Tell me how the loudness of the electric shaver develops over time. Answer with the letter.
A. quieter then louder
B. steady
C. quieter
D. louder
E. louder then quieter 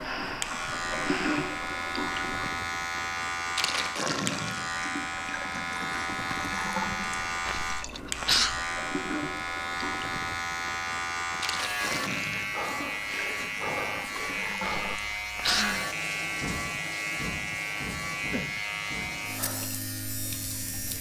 B.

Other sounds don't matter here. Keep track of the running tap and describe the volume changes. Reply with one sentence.
The loudness of the running tap goes down.